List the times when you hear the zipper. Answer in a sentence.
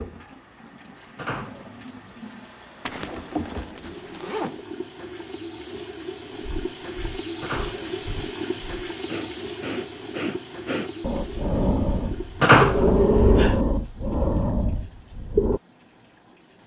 You can hear the zipper from 2.9 to 4.7 s.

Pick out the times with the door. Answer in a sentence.
You can hear the door from 1.1 to 2.2 s, from 7.4 to 8.7 s and from 12.4 to 13.6 s.